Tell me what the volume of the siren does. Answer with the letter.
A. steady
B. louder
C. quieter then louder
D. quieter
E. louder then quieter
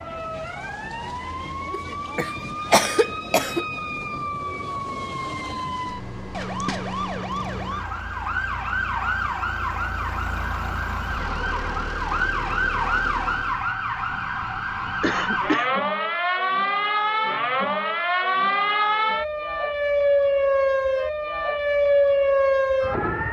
B.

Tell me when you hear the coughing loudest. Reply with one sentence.
The loudest moment of the coughing is at 3 seconds.